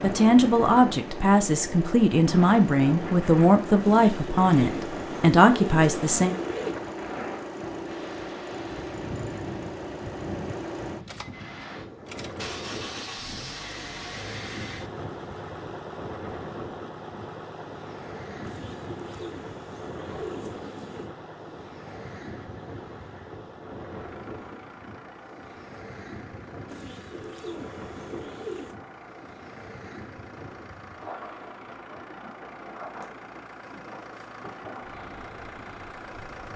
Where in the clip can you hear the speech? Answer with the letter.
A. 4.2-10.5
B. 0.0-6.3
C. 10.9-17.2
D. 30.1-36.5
B.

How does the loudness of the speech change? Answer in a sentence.
The loudness of the speech stays about the same.